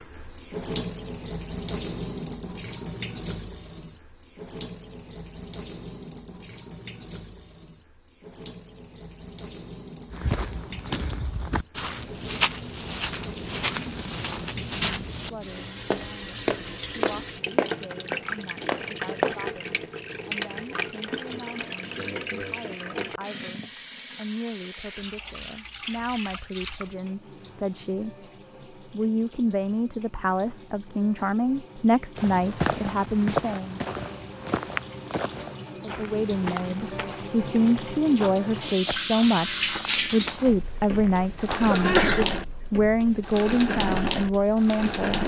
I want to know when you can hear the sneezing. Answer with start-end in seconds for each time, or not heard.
41.6-42.4.